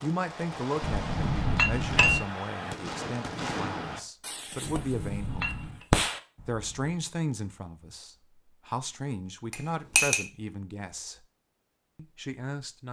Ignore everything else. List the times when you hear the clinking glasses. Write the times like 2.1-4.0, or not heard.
0.8-2.2, 4.7-5.8, 9.5-10.2.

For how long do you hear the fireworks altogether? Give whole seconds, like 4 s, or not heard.
7 s.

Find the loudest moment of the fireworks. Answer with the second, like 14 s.
6 s.